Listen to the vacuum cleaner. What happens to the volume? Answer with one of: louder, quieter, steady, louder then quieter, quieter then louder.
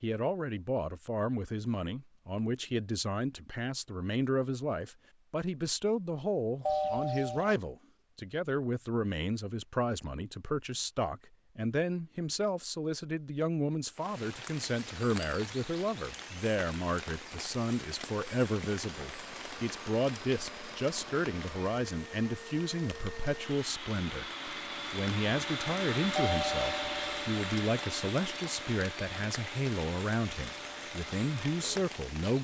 louder then quieter.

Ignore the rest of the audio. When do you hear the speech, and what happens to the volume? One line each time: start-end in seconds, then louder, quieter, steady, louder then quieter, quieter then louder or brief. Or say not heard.
0.0-32.3 steady.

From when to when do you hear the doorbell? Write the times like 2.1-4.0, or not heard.
6.7-7.5, 26.1-27.1.